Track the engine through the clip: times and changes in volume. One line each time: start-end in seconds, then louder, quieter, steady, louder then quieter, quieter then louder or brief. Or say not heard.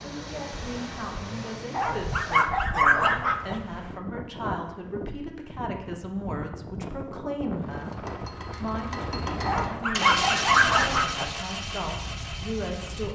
0.0-2.5 brief
7.5-13.0 louder then quieter.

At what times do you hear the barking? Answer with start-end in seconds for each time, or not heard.
1.7-3.6, 9.4-11.3.